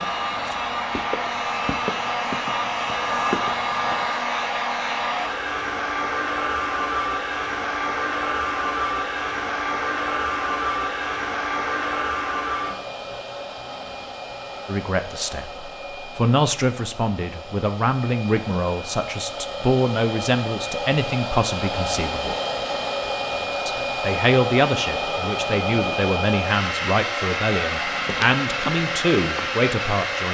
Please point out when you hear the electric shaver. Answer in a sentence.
You can't hear the electric shaver here.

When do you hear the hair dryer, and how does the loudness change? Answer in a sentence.
The hair dryer can be heard from 0.0 to 30.2 s, getting quieter then louder.